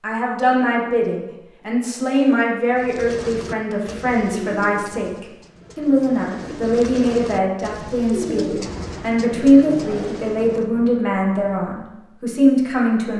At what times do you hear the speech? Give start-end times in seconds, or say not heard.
0.0-13.1.